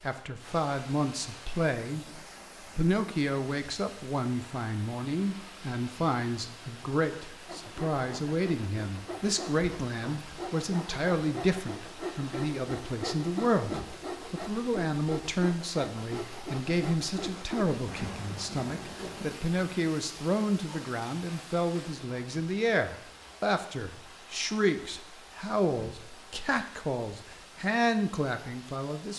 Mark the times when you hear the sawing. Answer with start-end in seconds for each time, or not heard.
7.5-17.8.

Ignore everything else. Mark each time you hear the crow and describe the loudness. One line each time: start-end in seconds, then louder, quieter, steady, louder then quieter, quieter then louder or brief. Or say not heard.
not heard.